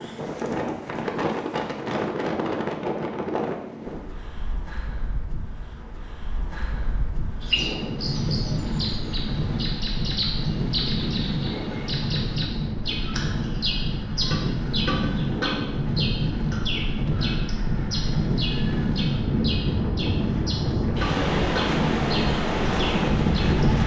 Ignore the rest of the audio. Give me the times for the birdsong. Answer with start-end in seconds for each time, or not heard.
7.4-23.6.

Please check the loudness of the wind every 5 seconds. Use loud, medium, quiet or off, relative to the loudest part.
medium, medium, medium, loud, loud.